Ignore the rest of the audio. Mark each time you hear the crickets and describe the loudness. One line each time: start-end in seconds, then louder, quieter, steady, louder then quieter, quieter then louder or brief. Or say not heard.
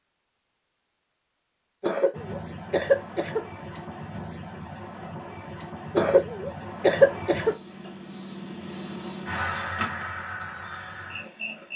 2.1-11.7 louder then quieter.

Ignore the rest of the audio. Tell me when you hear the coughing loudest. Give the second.
7 s.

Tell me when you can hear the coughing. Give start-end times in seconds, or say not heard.
1.8-3.5, 6.0-7.5.